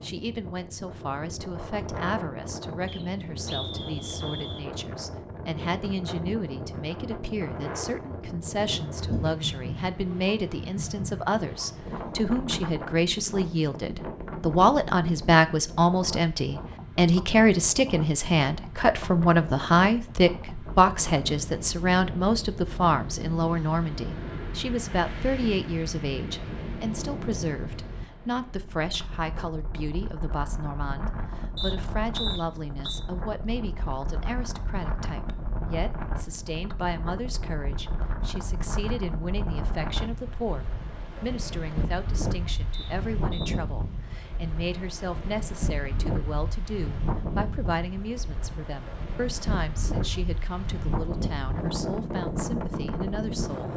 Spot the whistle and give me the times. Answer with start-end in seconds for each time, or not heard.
2.9-4.7, 31.6-33.0, 42.7-43.5.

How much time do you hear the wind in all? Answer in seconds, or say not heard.
54 s.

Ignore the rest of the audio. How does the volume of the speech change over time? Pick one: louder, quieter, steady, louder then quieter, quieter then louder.
louder then quieter.